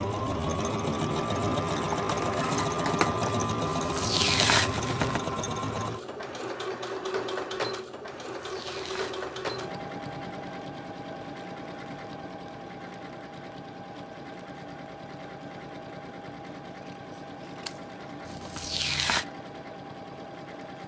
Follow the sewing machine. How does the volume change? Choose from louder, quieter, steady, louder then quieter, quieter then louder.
quieter.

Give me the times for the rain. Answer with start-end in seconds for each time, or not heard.
not heard.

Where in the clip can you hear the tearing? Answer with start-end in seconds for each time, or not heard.
3.6-5.2, 8.3-9.7, 18.2-19.2.